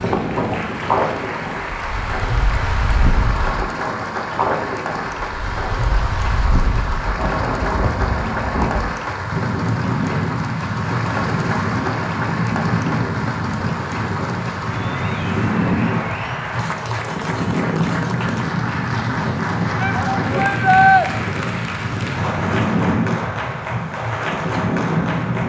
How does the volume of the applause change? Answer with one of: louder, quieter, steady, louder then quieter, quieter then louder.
steady.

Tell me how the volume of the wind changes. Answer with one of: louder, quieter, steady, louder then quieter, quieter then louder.
steady.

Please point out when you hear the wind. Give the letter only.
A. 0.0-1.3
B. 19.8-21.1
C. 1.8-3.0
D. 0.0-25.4
D.